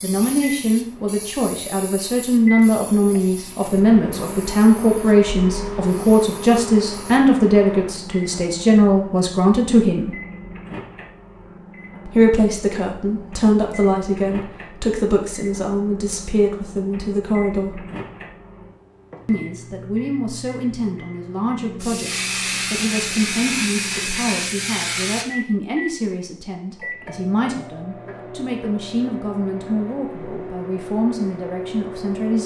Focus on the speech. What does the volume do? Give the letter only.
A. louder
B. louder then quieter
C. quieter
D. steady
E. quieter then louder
C.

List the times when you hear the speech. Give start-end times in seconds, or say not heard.
0.0-10.2, 12.1-17.8, 19.2-32.4.